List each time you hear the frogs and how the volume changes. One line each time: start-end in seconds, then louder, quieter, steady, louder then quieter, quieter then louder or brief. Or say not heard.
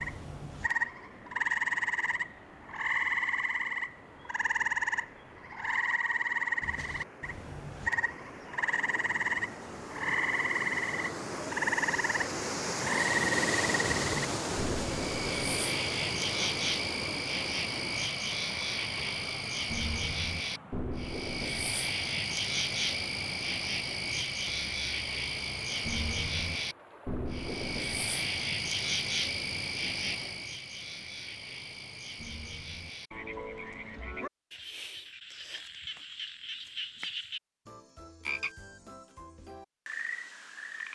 0.0-40.9 quieter.